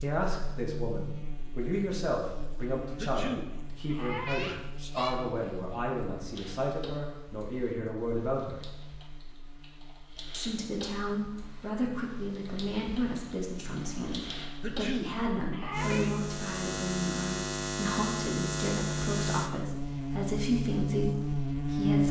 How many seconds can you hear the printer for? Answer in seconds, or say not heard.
not heard.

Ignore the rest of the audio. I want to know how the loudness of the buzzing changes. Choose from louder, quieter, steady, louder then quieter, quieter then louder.
quieter then louder.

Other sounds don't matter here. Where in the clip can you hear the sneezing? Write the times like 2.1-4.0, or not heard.
3.0-5.2, 14.6-16.1.